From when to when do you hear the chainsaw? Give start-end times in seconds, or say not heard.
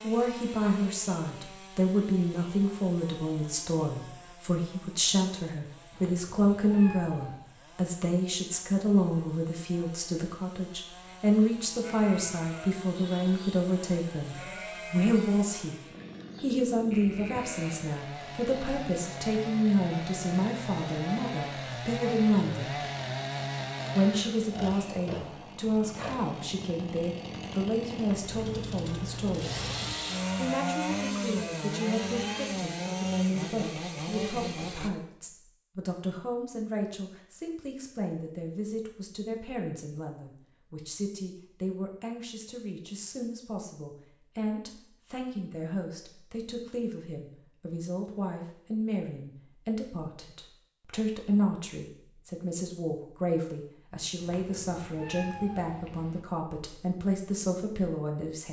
0.0-34.9.